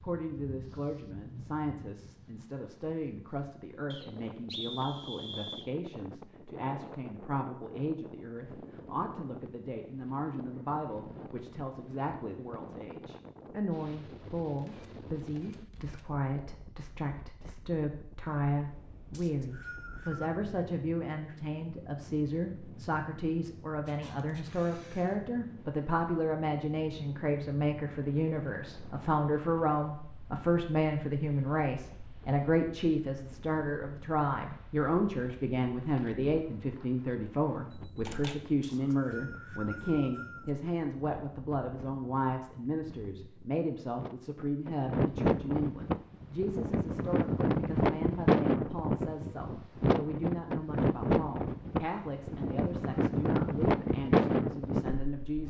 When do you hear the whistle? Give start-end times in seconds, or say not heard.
3.9-5.7, 19.1-20.3, 38.6-40.5.